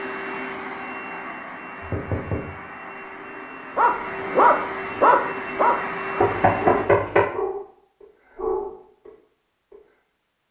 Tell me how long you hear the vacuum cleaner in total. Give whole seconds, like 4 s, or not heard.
7 s.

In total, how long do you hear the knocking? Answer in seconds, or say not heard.
2 s.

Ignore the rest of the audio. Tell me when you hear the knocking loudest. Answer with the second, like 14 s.
7 s.